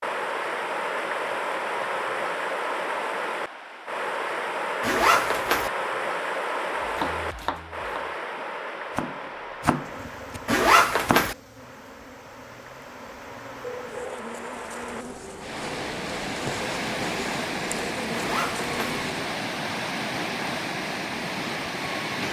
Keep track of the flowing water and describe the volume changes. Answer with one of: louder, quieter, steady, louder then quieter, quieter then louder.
quieter then louder.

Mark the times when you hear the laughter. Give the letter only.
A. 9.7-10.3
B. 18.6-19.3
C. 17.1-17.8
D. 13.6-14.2
D.